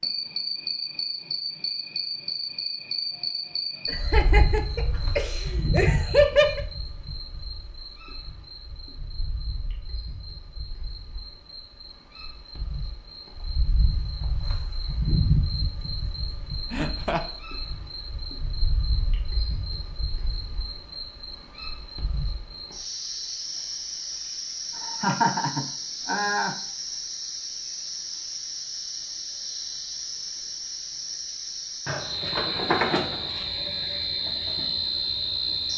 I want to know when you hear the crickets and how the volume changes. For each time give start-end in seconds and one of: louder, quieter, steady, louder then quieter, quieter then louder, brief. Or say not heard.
0.0-35.7 quieter then louder.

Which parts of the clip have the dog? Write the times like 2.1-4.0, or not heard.
not heard.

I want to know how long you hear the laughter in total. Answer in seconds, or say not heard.
5 s.